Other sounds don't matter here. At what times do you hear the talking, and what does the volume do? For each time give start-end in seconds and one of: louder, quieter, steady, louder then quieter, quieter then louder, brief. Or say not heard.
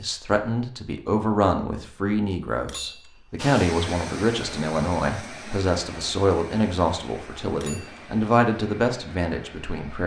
0.0-10.0 steady.